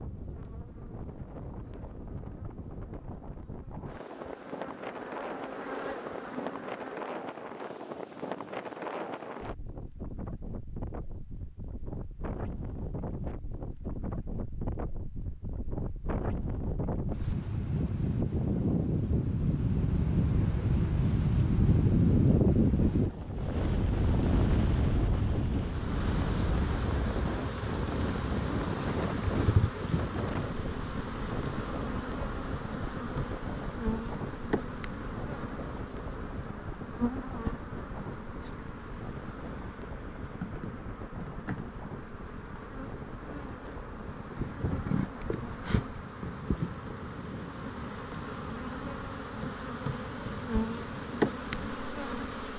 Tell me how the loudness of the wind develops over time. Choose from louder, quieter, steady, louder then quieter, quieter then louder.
louder then quieter.